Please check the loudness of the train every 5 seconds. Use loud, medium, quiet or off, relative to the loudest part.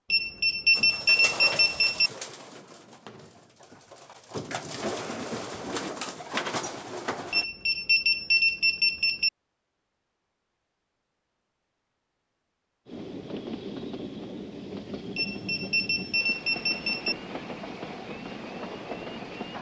off, off, loud, loud.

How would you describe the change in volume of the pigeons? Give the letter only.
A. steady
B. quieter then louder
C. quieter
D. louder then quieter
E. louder
B.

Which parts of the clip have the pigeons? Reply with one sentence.
You can hear the pigeons from 0.8 to 7.5 s.